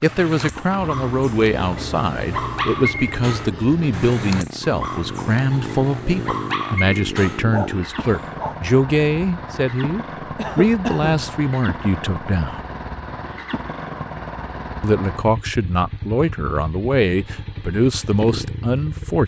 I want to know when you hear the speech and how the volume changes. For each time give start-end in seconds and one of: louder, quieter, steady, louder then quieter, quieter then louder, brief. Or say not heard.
0.0-12.6 steady
14.8-19.2 steady.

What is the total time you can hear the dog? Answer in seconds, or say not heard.
9 s.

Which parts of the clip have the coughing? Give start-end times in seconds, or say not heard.
10.3-11.3.